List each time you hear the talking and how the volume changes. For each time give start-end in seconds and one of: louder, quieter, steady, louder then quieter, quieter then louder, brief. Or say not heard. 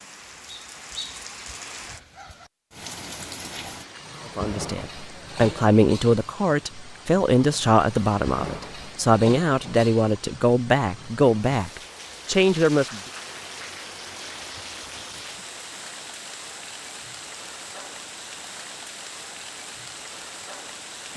4.3-13.0 steady.